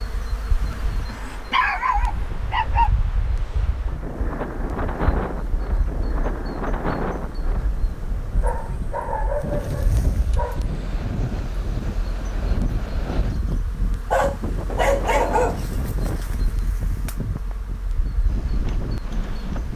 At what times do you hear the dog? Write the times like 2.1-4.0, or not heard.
1.1-2.9, 8.3-10.7, 14.1-15.7.